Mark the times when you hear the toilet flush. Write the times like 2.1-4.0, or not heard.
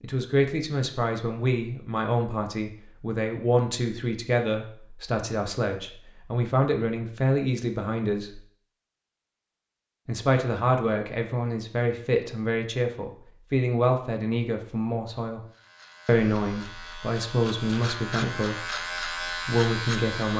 not heard.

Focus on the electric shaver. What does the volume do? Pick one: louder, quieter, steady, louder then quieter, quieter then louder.
louder.